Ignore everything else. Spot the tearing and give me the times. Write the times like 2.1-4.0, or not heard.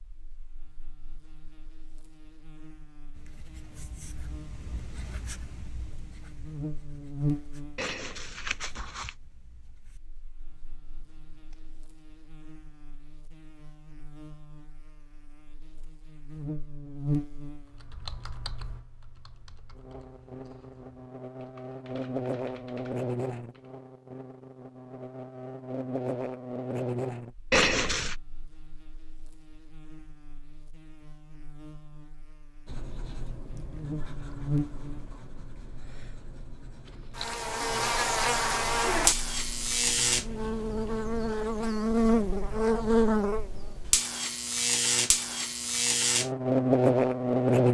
7.8-9.1, 27.5-28.1, 36.9-37.4.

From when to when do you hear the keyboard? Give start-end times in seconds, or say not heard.
17.6-23.8.